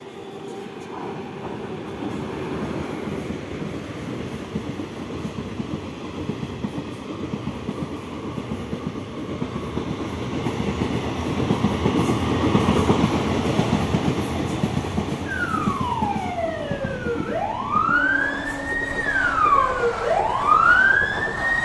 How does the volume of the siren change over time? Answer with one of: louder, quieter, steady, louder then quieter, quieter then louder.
louder.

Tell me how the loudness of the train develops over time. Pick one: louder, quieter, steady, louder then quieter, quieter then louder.
louder then quieter.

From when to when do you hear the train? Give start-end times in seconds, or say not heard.
0.0-21.5.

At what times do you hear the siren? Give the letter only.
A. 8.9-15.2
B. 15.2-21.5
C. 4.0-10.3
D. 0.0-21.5
B.